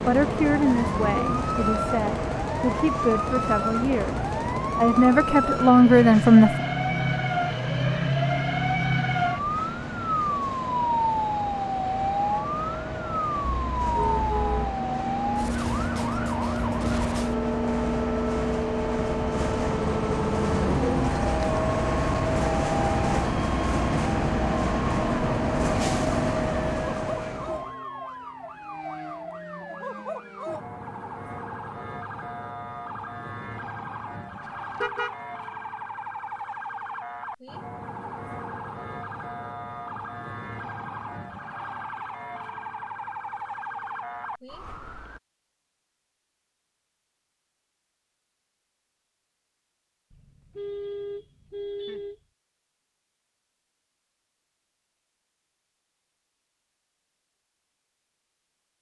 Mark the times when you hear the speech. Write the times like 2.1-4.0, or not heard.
0.1-6.5.